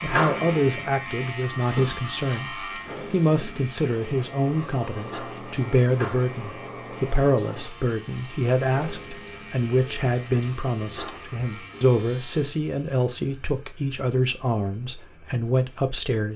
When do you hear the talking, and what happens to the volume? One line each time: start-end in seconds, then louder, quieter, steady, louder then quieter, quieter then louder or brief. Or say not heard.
0.0-16.3 steady.